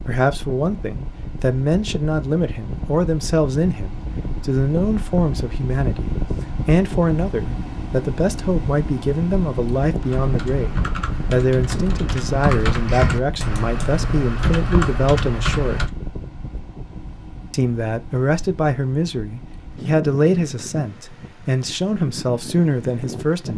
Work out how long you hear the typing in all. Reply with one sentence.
You can hear the typing for 6 seconds altogether.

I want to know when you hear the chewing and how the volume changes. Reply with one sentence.
You can't hear the chewing here.